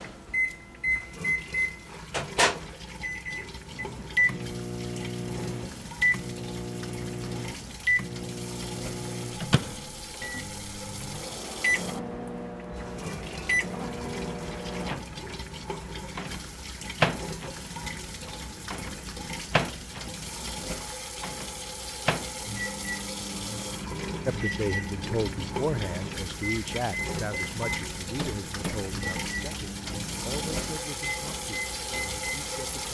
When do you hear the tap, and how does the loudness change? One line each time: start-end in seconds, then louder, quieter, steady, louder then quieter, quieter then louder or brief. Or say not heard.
0.0-32.8 louder.